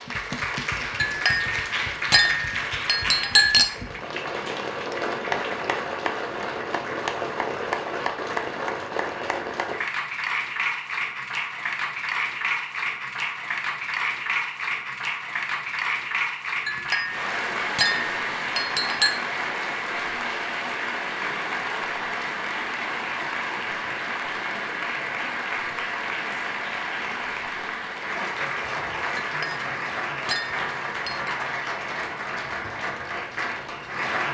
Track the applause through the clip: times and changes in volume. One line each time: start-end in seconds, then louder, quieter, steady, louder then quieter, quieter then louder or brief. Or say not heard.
0.0-34.2 steady.